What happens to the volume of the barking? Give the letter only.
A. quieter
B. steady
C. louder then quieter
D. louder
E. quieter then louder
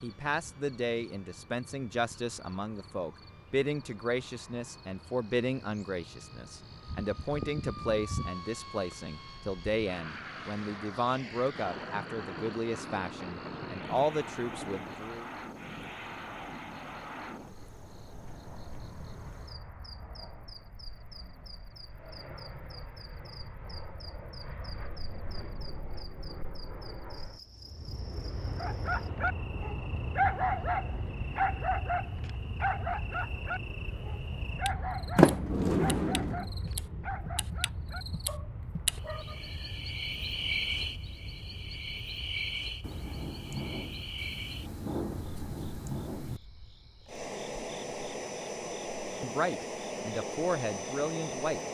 A.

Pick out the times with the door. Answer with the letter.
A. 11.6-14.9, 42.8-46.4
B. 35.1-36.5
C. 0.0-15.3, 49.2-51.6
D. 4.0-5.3
B.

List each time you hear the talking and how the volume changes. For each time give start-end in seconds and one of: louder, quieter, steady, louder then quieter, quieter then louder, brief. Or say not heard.
0.0-15.3 steady
49.2-51.6 brief.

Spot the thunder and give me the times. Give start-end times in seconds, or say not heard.
11.6-14.9, 42.8-46.4.